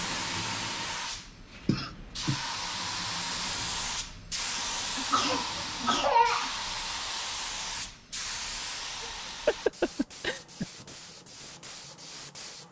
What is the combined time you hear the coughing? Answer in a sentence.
You can hear the coughing for 4 seconds altogether.